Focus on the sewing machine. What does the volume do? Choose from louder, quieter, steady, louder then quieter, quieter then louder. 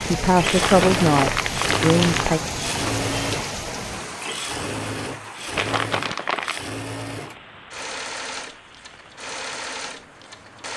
quieter.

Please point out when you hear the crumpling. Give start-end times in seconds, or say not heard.
0.5-2.4, 5.5-6.6.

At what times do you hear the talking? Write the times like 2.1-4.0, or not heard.
0.1-2.4.